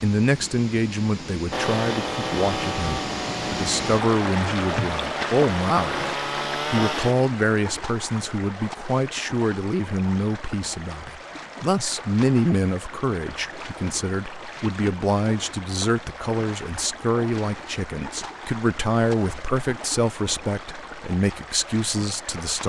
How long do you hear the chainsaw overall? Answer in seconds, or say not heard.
6 s.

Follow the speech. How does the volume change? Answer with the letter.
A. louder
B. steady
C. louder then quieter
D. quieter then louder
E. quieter
B.